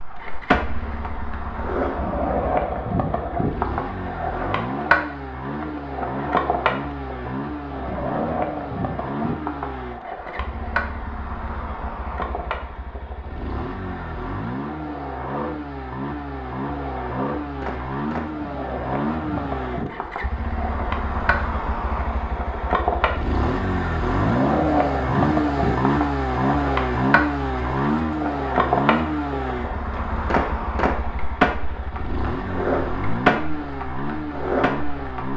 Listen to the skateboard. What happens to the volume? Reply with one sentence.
The loudness of the skateboard goes down, then up.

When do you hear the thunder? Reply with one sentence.
The thunder can't be heard in this clip.